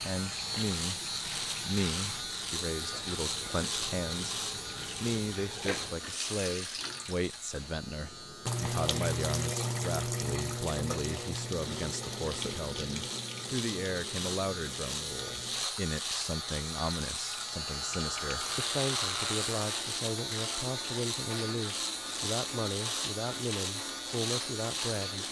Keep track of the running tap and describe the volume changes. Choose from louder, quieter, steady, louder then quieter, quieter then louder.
louder then quieter.